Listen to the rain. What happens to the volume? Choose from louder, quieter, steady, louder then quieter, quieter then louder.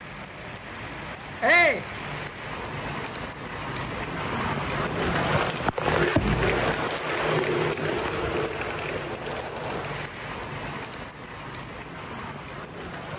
louder then quieter.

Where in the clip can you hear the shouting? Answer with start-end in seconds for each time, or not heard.
1.4-1.9.